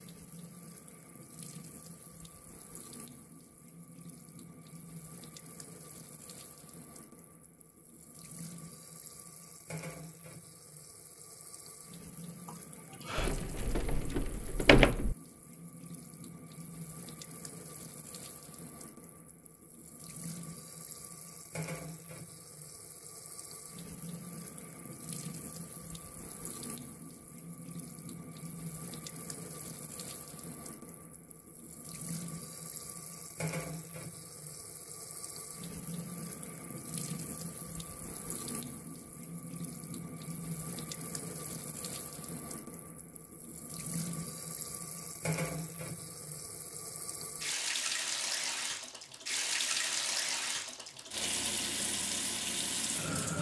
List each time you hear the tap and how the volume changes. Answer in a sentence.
You can hear the tap from 0.0 to 53.3 s, getting louder.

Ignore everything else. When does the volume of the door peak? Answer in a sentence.
The volume of the door peaks at 15 seconds.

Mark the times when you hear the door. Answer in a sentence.
You can hear the door from 13.2 to 15.2 s.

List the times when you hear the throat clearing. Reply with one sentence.
The throat clearing can be heard from 12.4 to 13.3 s.